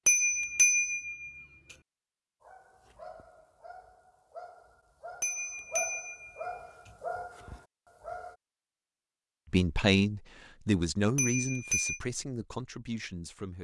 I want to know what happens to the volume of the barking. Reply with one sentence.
The volume of the barking goes up.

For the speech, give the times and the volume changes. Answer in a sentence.
You can hear the speech from 9.5 to 13.5 s, getting quieter.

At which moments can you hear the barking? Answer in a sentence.
You can hear the barking from 2.4 to 8.3 s.